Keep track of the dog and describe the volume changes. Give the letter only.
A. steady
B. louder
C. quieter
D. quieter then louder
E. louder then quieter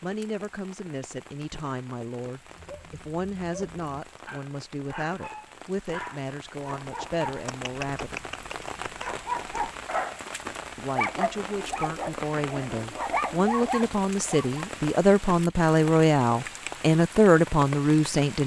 B.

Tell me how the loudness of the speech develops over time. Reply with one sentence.
The loudness of the speech goes up.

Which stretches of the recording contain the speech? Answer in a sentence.
The speech can be heard from 0.0 to 8.2 s and from 10.8 to 18.4 s.